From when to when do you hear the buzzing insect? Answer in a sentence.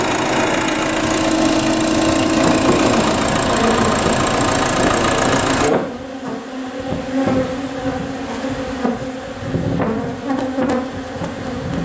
You can hear the buzzing insect from 2.0 to 11.8 s.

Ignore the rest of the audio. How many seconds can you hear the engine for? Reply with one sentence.
You can hear the engine for 6 seconds altogether.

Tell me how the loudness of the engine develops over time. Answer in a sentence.
The loudness of the engine stays about the same.